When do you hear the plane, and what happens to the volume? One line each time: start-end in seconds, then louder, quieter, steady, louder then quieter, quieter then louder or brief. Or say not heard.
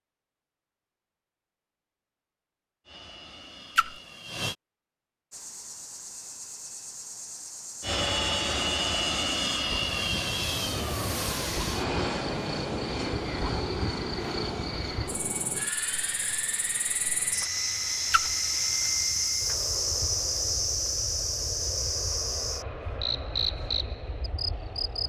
2.9-4.5 brief
7.8-25.0 quieter.